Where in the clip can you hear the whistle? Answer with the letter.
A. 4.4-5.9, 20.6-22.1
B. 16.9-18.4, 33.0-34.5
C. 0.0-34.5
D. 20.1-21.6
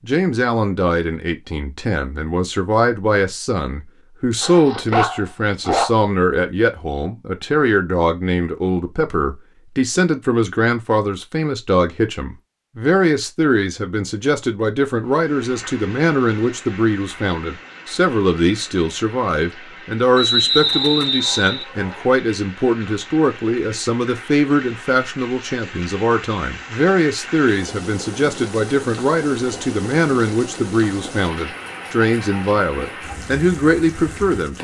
D.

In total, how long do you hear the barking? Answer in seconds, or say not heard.
3 s.